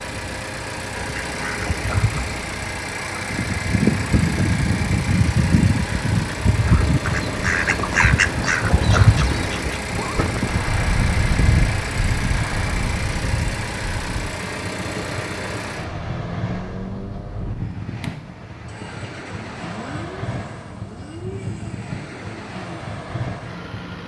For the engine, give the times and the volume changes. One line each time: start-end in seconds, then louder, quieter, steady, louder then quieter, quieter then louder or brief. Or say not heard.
0.0-24.0 quieter.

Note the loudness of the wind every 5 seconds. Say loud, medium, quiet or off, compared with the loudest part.
off, loud, loud, medium, medium.